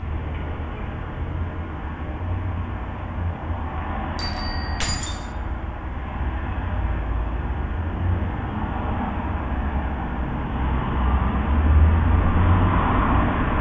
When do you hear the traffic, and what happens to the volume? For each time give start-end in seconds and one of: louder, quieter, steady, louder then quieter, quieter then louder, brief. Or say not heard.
0.0-13.5 louder.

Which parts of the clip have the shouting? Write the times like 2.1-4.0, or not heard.
not heard.